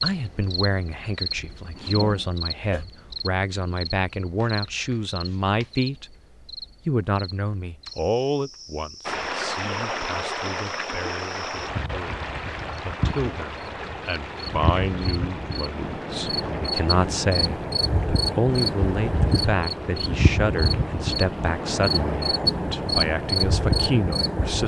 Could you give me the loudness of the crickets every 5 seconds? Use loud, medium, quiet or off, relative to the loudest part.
medium, quiet, medium, loud, loud.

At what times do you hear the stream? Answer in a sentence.
The stream can be heard from 9.1 to 24.6 s.